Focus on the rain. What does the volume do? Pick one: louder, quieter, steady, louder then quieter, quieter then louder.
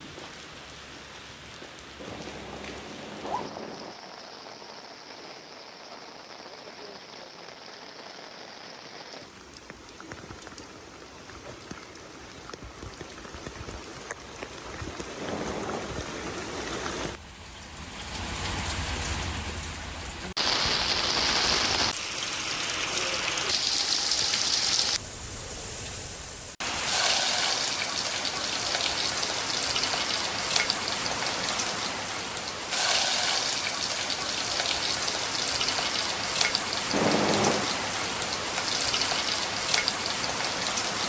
louder.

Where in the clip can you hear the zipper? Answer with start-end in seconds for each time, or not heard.
2.0-4.0, 15.2-15.9, 36.9-37.7.